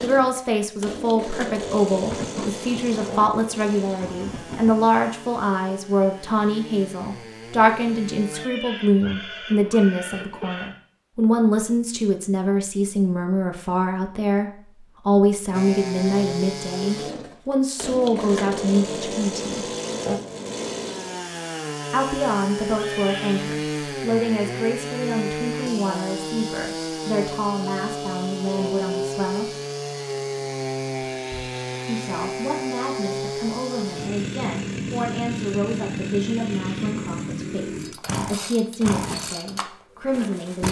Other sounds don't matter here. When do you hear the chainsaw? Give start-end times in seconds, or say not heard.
0.0-8.5, 15.5-40.6.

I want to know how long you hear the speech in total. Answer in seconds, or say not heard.
36 s.